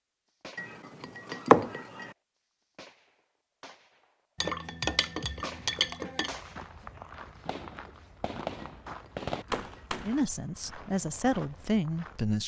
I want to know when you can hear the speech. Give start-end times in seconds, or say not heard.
9.9-12.4.